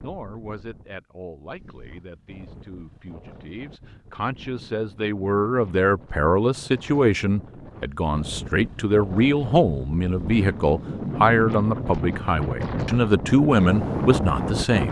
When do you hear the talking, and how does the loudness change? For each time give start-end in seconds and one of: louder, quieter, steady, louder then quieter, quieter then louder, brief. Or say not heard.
0.0-14.8 louder.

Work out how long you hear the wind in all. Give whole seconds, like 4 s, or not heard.
15 s.